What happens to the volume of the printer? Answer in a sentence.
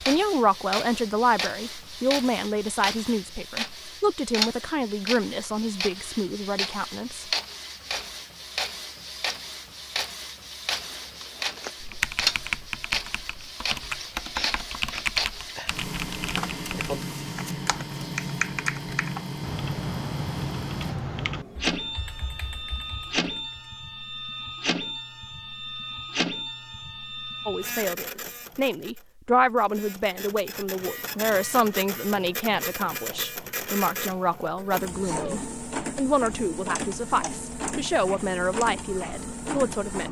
The loudness of the printer stays about the same.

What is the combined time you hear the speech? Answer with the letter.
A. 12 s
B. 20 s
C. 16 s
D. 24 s
B.